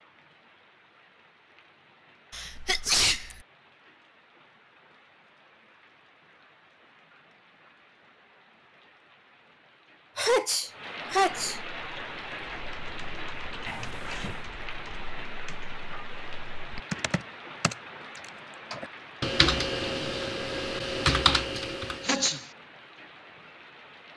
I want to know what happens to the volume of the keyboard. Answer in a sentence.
The loudness of the keyboard goes up.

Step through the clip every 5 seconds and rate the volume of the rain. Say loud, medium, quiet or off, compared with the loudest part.
quiet, quiet, loud, loud, medium.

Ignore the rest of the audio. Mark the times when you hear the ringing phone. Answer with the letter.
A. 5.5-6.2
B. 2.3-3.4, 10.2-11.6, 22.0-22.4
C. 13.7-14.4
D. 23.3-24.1
C.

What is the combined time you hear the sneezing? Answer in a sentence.
The sneezing can be heard for 3 seconds in total.